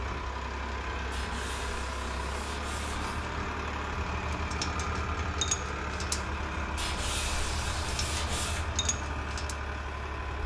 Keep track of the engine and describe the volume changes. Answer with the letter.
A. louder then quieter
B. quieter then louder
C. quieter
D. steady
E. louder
D.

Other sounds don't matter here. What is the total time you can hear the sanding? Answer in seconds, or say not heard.
4 s.